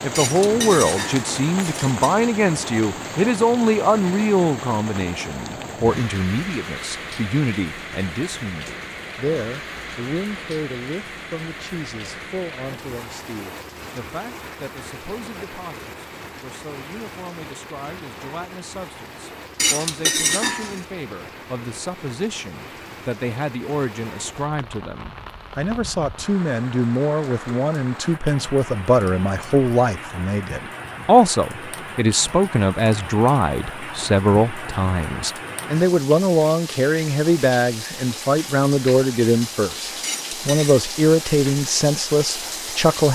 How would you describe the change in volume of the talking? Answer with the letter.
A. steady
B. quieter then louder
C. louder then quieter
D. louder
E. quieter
B.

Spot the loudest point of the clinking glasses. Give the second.
20 s.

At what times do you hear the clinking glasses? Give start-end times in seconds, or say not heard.
0.1-2.1, 19.6-20.8, 40.0-40.8.